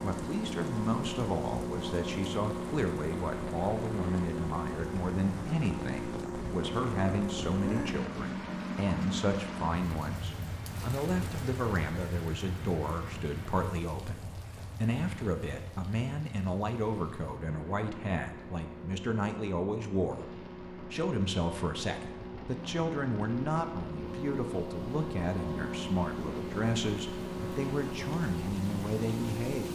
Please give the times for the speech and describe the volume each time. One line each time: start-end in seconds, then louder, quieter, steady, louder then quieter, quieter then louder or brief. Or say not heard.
0.0-29.6 steady.